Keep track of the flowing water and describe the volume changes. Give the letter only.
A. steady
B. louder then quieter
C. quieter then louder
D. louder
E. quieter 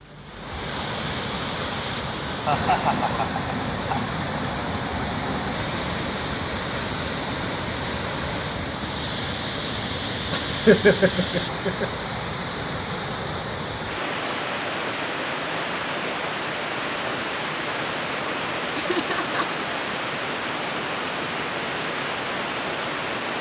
A.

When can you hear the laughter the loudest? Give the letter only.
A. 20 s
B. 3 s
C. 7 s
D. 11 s
D.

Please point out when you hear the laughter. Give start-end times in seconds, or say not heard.
2.5-4.2, 10.3-11.9, 18.8-19.5.